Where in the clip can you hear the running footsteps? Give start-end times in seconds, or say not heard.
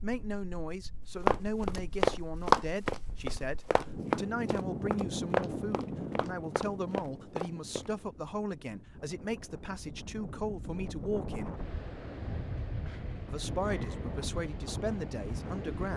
1.2-7.9.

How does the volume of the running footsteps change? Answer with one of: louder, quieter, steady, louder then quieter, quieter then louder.
quieter.